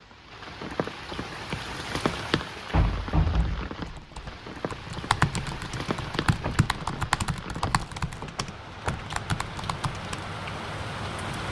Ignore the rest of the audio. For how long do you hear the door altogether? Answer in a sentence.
You can hear the door for 4 seconds altogether.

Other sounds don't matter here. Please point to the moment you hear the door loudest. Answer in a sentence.
The volume of the door peaks at 3 seconds.